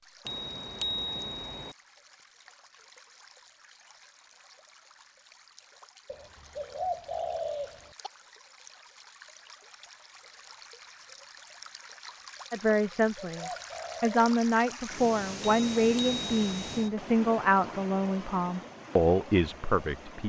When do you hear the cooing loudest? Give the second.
7 s.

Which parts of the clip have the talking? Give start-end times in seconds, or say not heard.
12.5-20.2.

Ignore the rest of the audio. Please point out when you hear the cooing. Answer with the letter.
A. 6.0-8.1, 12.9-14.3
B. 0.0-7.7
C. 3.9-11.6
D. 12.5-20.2
A.